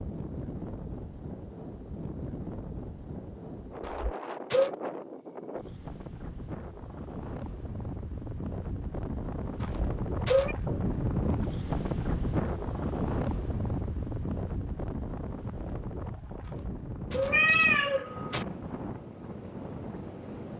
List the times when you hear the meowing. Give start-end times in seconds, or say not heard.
3.8-4.7, 9.6-10.6, 16.4-18.4.